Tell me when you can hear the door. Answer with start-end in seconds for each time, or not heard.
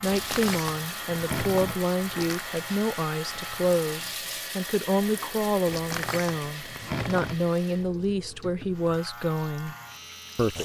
0.1-2.5, 5.7-7.5.